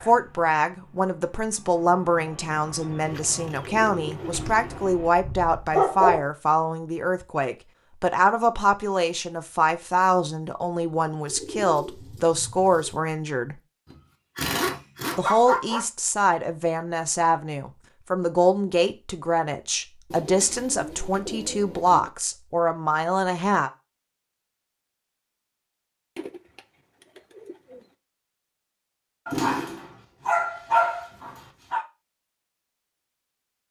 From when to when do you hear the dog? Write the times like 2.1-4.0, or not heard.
4.3-6.3, 13.9-15.8, 29.2-31.9.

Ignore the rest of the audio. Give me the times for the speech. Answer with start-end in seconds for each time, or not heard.
0.0-13.6, 15.2-23.7.